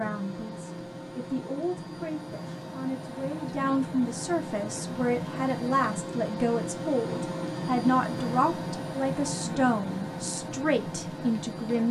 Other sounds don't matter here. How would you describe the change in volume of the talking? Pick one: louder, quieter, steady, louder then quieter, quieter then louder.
louder.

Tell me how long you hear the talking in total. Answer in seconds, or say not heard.
12 s.